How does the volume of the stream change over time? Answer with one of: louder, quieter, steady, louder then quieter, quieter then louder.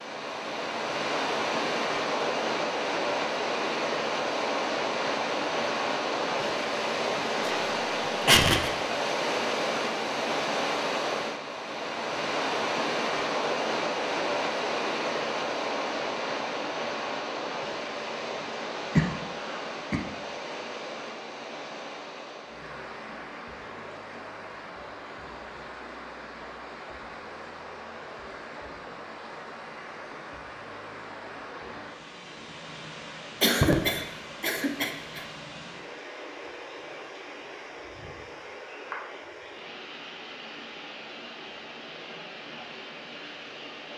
quieter.